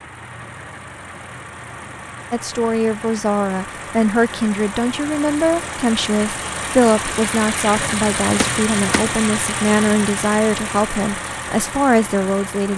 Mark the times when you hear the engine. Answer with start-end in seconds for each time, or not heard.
0.0-12.7.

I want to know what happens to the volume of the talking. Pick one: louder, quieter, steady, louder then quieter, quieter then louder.
steady.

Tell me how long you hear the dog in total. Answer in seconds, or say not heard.
not heard.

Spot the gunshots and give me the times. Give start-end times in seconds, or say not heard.
8.3-9.1.